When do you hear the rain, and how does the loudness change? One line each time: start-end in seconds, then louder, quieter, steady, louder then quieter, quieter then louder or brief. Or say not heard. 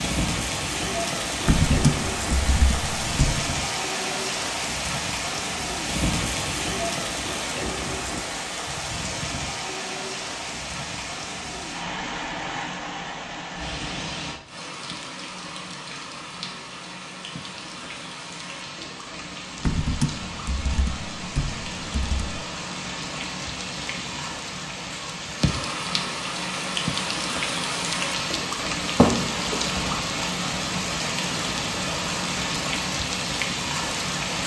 0.0-34.4 quieter then louder.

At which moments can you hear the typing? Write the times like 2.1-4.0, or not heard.
1.4-3.5, 19.6-22.4.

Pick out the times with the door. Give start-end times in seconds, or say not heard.
28.9-30.0.